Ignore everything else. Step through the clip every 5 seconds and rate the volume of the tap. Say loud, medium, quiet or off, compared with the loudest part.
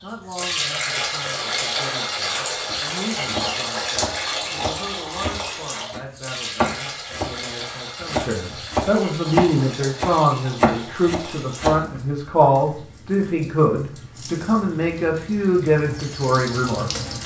loud, medium, quiet, medium.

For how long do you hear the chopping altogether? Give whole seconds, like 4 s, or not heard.
9 s.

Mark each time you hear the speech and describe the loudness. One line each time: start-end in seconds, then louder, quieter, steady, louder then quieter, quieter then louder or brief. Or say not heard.
0.0-17.1 louder.